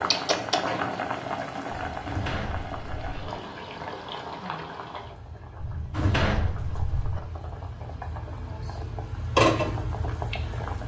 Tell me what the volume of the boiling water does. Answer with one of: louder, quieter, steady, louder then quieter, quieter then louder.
quieter then louder.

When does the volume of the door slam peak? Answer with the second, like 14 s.
6 s.